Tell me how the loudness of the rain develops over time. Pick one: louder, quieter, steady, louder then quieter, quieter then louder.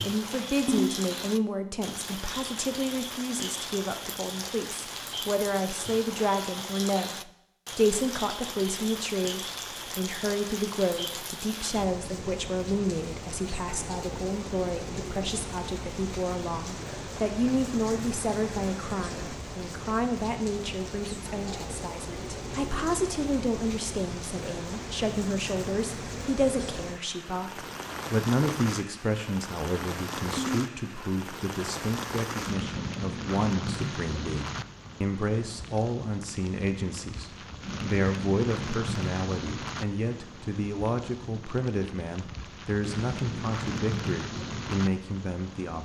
steady.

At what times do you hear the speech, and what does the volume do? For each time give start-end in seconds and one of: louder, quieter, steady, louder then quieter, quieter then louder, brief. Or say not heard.
0.0-45.8 steady.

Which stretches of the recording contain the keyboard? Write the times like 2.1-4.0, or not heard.
not heard.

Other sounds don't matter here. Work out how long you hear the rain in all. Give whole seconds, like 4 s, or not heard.
46 s.